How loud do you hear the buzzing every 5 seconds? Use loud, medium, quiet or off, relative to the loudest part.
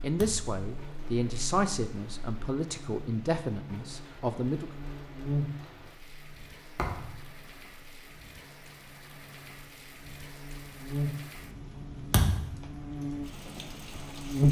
quiet, medium, loud.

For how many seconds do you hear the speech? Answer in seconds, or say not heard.
5 s.